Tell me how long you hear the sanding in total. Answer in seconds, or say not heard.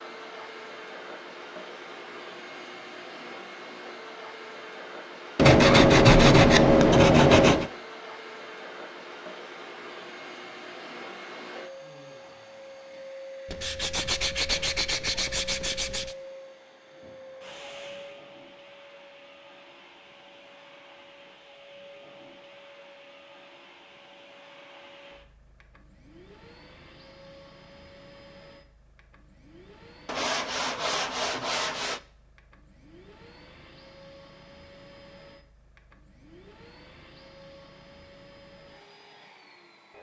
7 s.